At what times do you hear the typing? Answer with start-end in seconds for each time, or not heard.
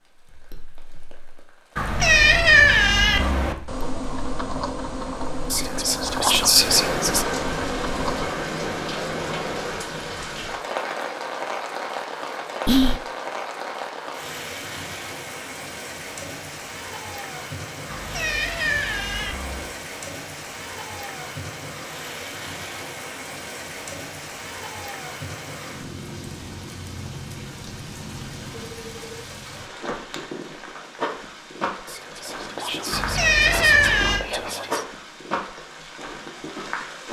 3.1-8.3.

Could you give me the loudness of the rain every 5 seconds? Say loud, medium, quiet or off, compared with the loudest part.
quiet, loud, loud, medium, medium, medium, medium, medium.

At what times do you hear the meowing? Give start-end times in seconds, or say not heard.
1.8-3.5, 17.9-19.7, 32.9-34.2.